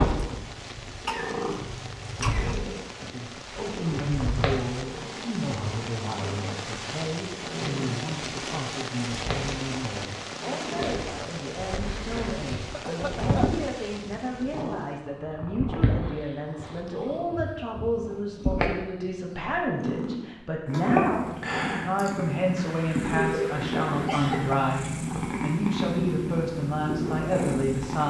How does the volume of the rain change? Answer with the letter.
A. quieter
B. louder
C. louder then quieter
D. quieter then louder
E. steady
C.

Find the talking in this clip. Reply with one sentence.
You can hear the talking from 3.0 to 28.0 s.